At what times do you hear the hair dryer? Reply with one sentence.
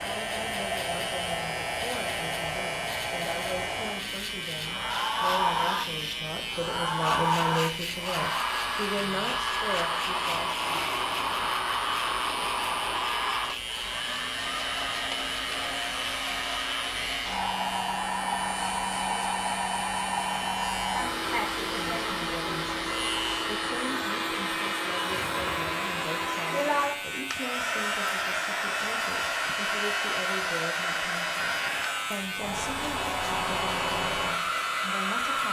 The hair dryer can be heard from 0.0 to 35.4 s.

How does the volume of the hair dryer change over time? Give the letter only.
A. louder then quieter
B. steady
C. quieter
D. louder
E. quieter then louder
B.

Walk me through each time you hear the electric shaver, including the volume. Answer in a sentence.
The electric shaver can be heard from 0.0 to 35.4 s, at a steady volume.